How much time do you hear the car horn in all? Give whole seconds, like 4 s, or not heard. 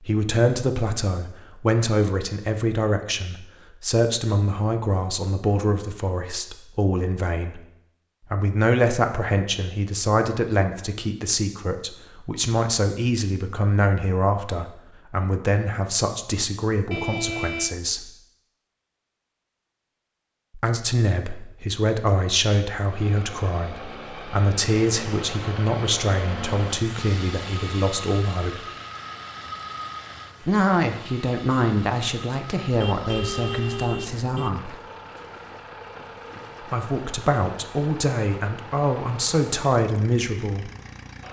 3 s.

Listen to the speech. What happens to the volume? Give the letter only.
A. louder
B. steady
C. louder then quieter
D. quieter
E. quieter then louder
B.